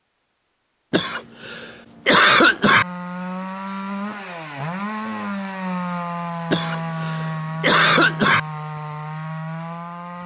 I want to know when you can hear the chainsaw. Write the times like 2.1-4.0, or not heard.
2.8-10.2.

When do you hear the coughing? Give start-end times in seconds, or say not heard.
0.9-2.9, 6.5-8.4.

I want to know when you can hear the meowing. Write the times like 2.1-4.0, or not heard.
not heard.